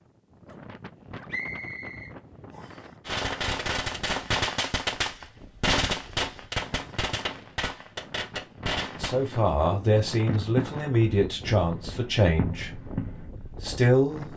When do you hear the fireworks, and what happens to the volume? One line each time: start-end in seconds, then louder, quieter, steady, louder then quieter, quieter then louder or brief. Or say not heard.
3.0-13.3 quieter.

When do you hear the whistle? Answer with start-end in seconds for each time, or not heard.
1.2-2.9.